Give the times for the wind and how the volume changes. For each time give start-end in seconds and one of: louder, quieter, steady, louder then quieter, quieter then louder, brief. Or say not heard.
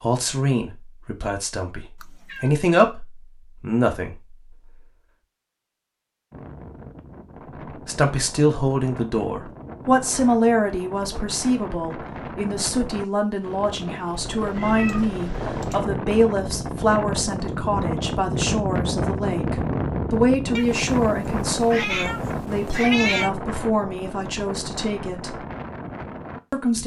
6.3-26.8 louder then quieter.